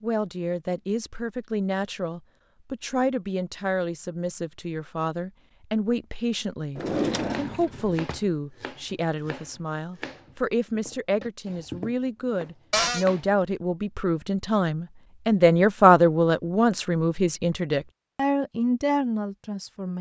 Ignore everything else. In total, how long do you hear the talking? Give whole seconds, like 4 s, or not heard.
20 s.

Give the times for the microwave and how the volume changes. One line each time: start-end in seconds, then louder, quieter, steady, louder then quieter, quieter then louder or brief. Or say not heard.
not heard.